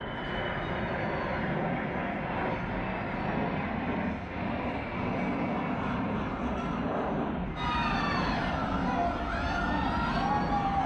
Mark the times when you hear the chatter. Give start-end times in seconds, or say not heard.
0.1-10.8.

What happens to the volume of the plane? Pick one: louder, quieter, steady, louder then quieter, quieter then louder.
steady.